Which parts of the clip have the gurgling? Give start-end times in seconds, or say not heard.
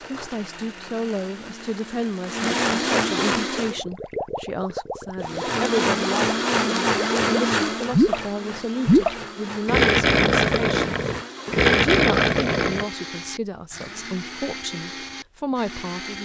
3.5-8.2, 8.8-12.8.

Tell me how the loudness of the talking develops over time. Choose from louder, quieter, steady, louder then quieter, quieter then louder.
steady.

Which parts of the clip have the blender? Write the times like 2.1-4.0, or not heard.
0.0-3.8, 5.2-16.1.